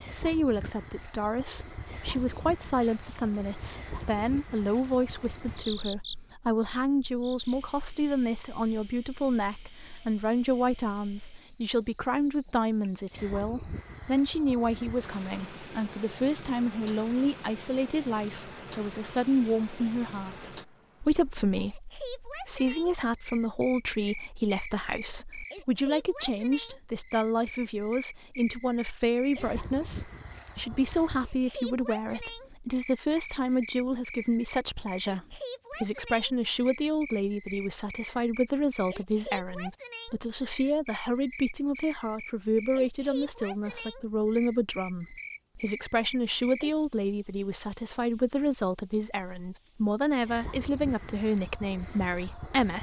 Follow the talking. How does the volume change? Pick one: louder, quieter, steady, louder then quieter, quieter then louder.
steady.